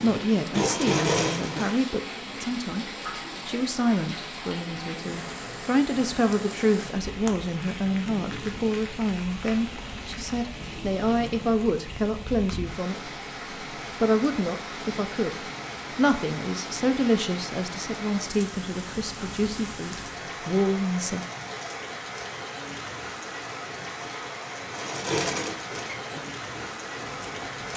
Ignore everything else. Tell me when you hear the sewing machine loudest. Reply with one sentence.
The loudest moment of the sewing machine is at 1 second.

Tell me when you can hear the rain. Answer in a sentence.
The rain can be heard from 0.0 to 27.7 s.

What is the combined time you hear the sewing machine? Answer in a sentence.
You can hear the sewing machine for 5 seconds altogether.